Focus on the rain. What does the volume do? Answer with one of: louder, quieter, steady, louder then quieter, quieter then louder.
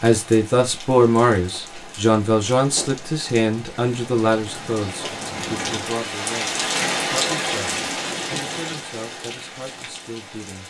louder then quieter.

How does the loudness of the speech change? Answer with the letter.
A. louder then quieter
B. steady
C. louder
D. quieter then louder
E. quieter
E.